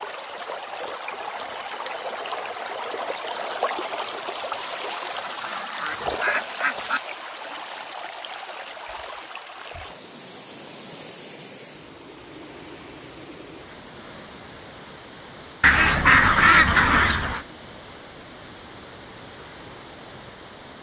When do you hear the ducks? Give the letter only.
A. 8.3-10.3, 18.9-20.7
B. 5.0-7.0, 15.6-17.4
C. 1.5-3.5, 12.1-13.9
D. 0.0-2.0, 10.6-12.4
B.